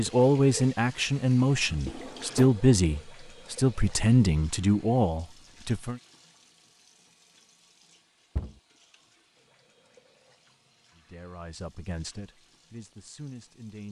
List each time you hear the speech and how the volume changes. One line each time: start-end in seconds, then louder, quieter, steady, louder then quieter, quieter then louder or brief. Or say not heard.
0.0-6.0 steady
10.9-13.8 brief.